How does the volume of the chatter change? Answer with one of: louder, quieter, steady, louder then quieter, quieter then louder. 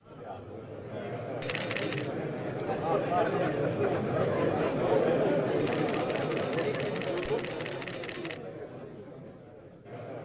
louder then quieter.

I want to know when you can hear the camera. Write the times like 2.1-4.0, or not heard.
1.4-2.1, 5.5-8.4.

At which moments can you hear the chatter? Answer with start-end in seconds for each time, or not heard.
0.0-10.2.